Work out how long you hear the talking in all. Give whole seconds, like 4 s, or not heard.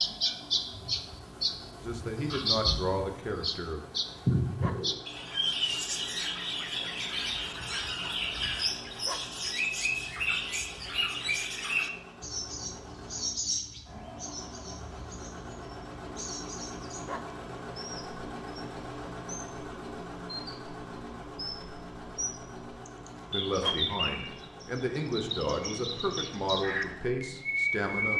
7 s.